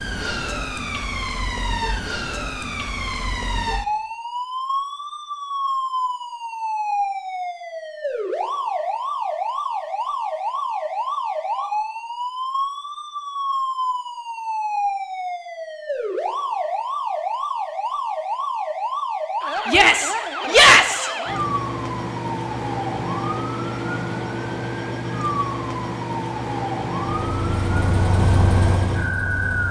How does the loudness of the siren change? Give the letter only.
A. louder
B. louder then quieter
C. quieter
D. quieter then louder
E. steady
E.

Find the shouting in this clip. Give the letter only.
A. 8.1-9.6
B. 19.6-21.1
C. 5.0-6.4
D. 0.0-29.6
B.